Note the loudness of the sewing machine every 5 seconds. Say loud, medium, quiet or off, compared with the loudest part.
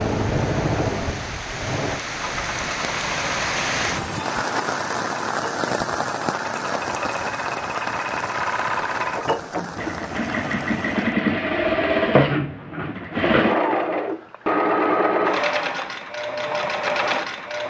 medium, medium, loud, loud.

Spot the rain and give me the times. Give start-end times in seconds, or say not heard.
0.0-11.2.